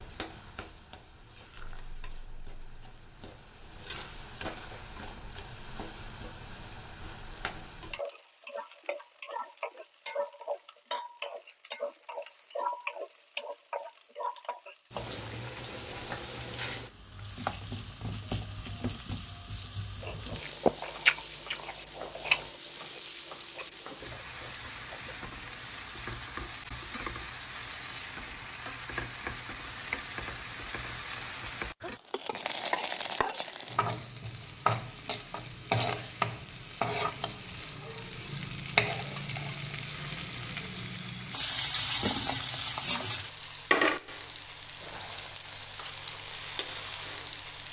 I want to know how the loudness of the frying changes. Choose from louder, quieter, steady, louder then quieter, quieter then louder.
louder.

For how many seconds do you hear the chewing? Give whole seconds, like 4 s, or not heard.
5 s.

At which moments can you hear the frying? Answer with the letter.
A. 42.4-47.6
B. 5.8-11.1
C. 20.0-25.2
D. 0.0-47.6
D.